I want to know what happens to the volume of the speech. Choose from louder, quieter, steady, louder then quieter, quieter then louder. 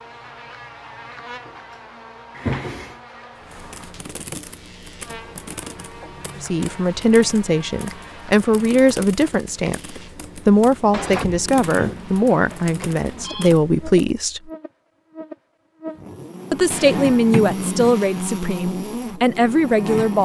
steady.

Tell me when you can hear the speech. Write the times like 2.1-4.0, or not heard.
6.4-14.5, 16.5-20.2.